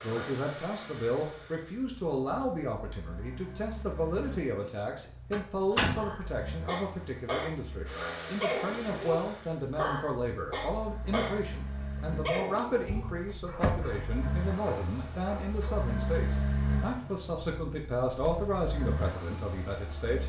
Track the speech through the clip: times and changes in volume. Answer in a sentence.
You can hear the speech from 0.0 to 20.2 s, at a steady volume.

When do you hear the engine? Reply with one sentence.
The engine can be heard from 0.0 to 20.2 s.